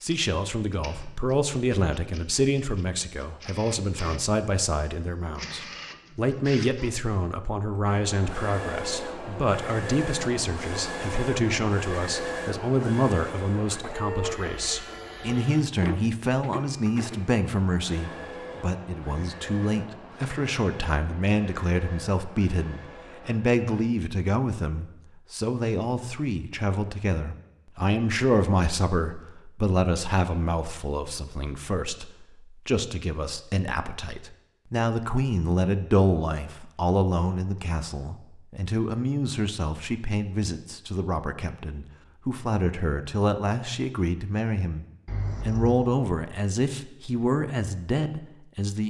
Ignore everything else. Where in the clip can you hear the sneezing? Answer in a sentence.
You can't hear the sneezing here.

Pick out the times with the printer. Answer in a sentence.
The printer can be heard from 0.0 to 23.9 s.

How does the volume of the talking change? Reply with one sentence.
The volume of the talking stays about the same.